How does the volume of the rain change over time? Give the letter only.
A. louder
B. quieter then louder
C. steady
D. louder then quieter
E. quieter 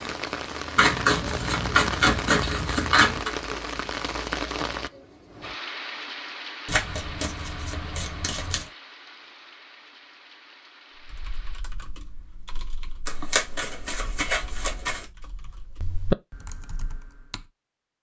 E.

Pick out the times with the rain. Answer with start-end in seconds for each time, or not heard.
0.0-11.6.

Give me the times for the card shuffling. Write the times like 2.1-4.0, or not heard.
0.8-3.3, 6.7-8.7, 13.1-15.1.